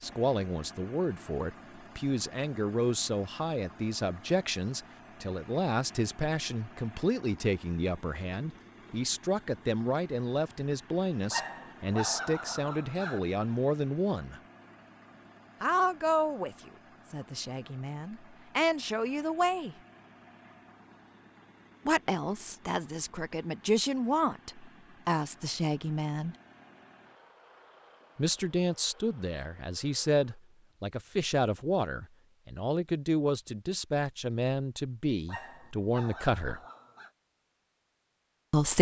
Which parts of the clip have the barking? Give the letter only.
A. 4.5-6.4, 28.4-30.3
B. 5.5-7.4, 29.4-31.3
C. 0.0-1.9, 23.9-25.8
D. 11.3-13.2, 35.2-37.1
D.